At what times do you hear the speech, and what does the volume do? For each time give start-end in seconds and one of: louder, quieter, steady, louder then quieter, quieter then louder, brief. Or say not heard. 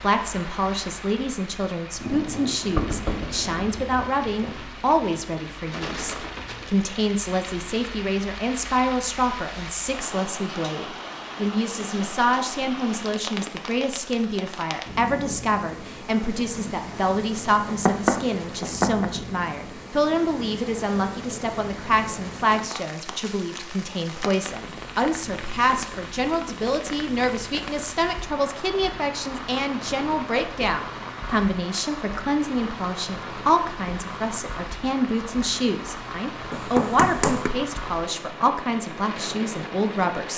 0.0-40.3 steady.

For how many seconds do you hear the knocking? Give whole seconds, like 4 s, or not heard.
4 s.